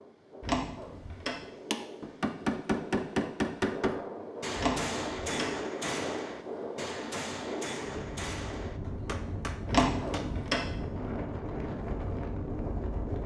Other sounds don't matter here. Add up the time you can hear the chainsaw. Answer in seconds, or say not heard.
not heard.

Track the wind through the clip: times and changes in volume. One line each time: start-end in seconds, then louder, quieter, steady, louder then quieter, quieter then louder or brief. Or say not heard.
0.0-13.2 louder.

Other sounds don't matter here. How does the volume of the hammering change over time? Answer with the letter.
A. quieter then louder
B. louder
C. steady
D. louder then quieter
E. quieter
E.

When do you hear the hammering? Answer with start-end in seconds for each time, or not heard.
1.7-10.5.